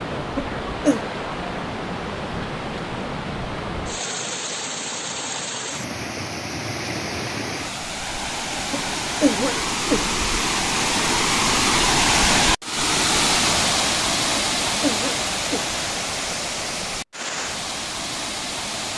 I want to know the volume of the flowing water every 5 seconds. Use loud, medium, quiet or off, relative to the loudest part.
medium, medium, loud, medium.